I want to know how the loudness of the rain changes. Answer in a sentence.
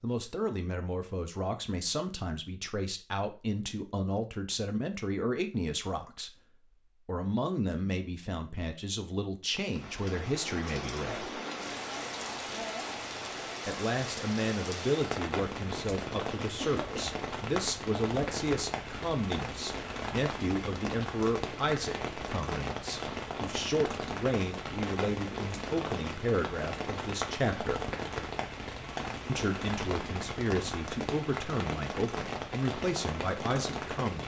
The volume of the rain stays about the same.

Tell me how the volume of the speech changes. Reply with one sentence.
The volume of the speech stays about the same.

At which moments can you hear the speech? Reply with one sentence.
The speech can be heard from 0.0 to 6.3 s, from 7.0 to 11.3 s, from 13.7 to 27.9 s and from 29.2 to 34.2 s.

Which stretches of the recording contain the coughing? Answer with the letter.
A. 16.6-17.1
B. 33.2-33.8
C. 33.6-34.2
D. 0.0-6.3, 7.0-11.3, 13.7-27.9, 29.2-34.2
A.